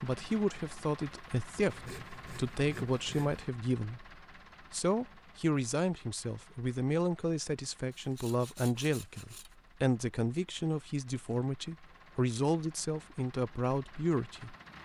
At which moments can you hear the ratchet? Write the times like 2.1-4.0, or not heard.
not heard.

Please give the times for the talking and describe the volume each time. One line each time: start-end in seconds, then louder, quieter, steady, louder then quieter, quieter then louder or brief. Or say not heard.
0.0-14.6 steady.